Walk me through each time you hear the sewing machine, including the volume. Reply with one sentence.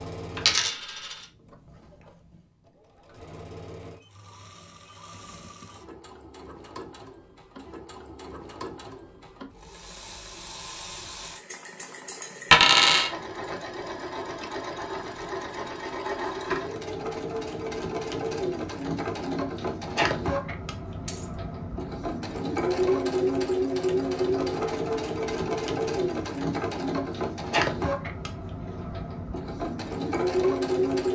You can hear the sewing machine from 0.0 to 31.1 s, getting louder.